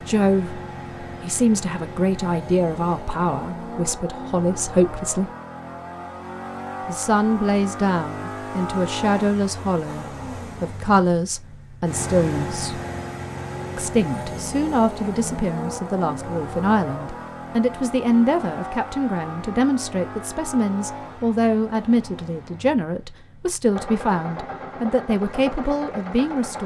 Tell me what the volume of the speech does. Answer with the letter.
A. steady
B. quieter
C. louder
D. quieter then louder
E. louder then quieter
A.